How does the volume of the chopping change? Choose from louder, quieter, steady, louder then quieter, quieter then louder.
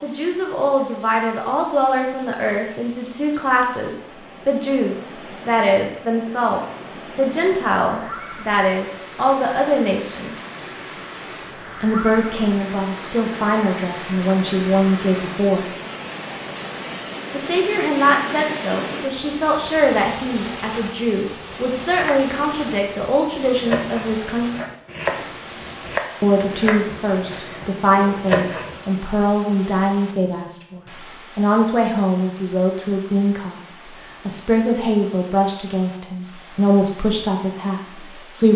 louder.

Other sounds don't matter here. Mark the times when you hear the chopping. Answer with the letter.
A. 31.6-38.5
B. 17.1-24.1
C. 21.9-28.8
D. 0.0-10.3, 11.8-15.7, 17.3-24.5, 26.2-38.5
C.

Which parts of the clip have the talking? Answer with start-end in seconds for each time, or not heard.
0.0-10.3, 11.8-15.7, 17.3-24.5, 26.2-38.5.